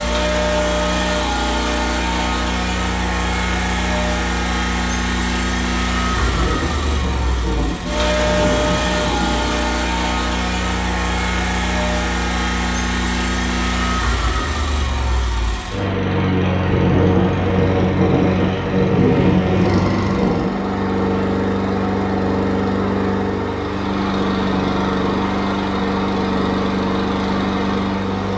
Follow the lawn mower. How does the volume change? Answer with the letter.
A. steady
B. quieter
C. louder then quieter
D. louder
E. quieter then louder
A.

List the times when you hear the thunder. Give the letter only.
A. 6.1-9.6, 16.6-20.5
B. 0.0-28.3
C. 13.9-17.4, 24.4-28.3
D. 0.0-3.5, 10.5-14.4
A.